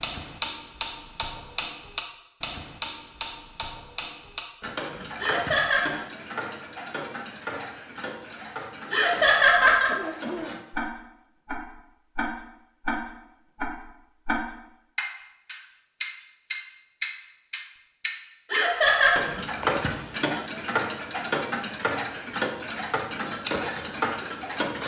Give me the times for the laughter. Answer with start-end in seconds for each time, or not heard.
5.2-5.8, 8.9-9.9, 18.5-19.1.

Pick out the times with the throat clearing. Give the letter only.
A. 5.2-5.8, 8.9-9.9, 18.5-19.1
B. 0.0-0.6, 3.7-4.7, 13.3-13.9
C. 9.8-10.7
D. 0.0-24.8
C.